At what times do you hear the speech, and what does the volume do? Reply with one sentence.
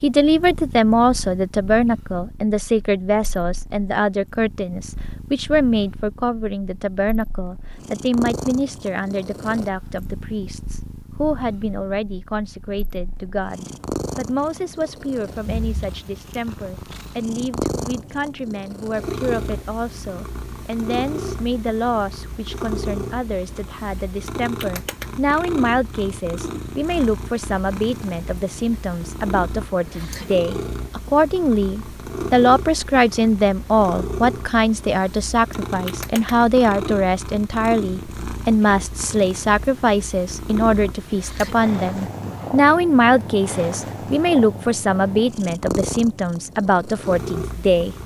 You can hear the speech from 0.0 to 48.0 s, getting quieter then louder.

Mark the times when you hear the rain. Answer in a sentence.
The rain can't be heard in this clip.